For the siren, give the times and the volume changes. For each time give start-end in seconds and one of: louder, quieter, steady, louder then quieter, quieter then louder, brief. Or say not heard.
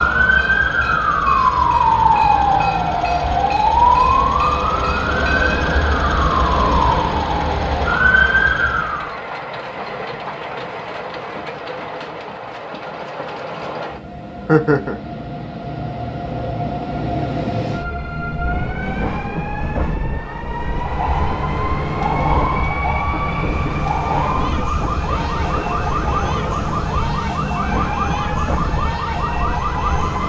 0.0-9.2 steady
20.6-30.2 steady.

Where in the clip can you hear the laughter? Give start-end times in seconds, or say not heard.
14.4-15.0.